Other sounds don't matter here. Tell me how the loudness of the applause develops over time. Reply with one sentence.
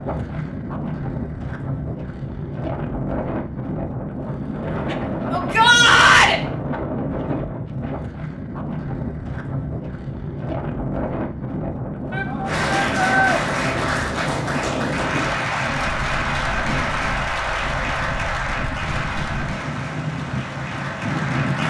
The volume of the applause goes down.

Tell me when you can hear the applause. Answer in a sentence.
The applause can be heard from 12.4 to 21.6 s.